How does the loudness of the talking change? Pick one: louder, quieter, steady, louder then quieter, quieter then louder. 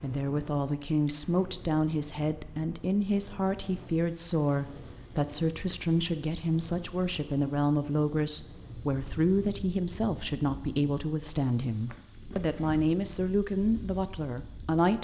steady.